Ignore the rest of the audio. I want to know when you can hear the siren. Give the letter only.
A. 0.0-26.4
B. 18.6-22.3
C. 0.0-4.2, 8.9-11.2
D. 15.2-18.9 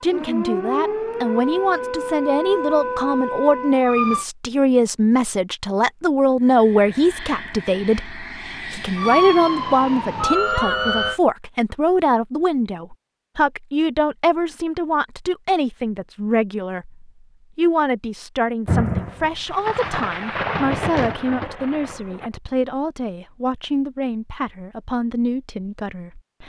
C.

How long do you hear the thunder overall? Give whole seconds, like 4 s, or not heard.
4 s.